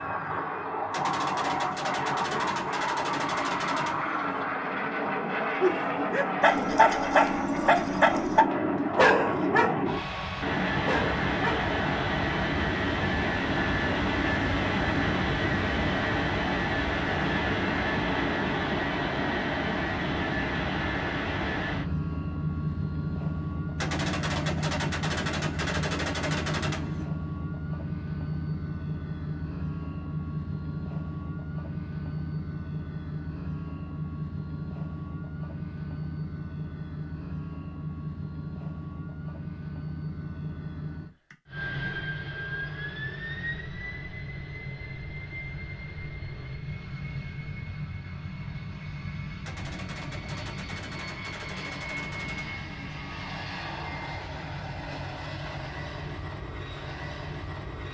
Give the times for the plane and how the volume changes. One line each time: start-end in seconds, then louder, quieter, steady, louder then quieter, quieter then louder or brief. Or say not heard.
0.0-57.8 quieter.